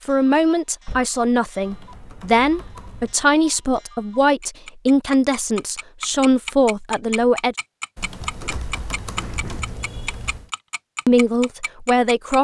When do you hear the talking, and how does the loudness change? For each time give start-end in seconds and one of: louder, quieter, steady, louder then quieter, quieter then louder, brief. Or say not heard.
0.1-7.5 steady
11.1-12.3 brief.